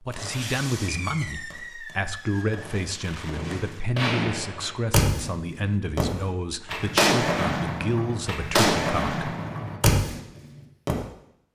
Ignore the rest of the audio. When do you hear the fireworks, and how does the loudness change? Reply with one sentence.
The fireworks can be heard from 0.1 to 10.9 s, getting louder.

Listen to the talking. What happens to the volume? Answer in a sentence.
The loudness of the talking stays about the same.